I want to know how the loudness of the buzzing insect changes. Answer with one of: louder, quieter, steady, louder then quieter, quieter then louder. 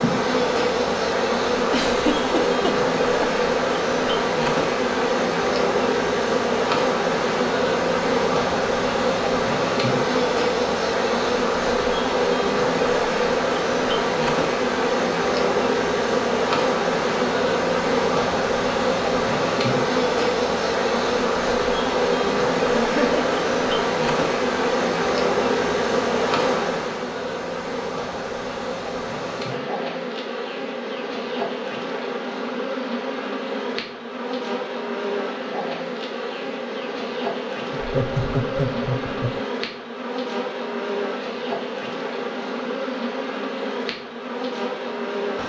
quieter.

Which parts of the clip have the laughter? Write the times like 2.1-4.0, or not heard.
1.7-3.3, 22.8-23.2, 37.7-39.4.